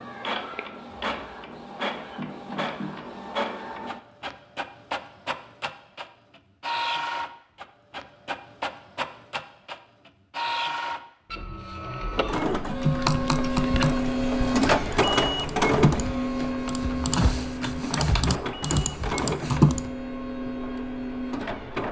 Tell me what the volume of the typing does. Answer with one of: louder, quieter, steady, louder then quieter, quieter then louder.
quieter then louder.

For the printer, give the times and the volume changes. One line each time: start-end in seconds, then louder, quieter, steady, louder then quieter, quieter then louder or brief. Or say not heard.
0.0-21.8 louder then quieter.